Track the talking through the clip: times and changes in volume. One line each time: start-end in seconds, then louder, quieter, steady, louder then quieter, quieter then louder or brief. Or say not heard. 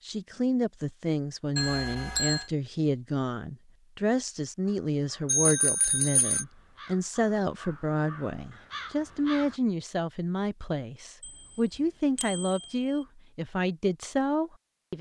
0.1-14.9 steady.